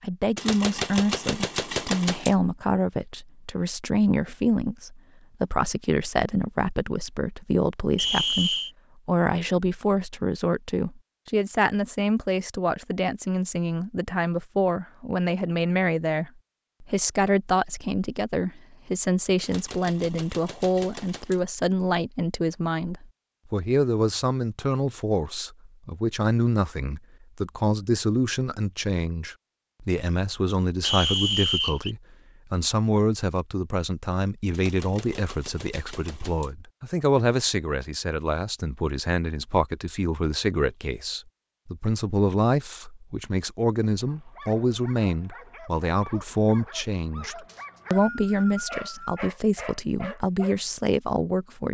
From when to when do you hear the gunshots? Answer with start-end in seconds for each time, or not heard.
0.3-2.4, 19.4-21.4, 34.5-36.5.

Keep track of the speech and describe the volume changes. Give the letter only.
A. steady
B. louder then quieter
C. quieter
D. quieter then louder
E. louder
A.